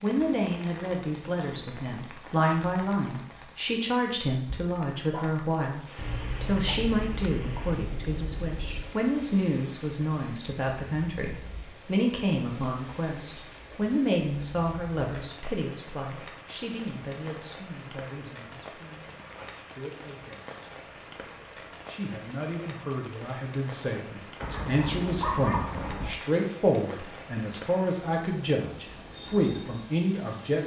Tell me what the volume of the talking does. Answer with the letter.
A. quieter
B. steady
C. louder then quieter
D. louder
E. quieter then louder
E.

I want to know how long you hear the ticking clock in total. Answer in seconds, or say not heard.
not heard.